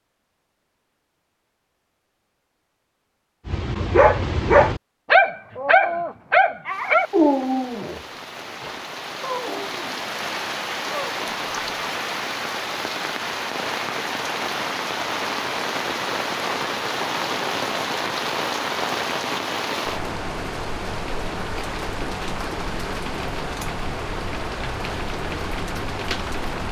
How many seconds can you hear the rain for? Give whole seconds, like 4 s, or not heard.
20 s.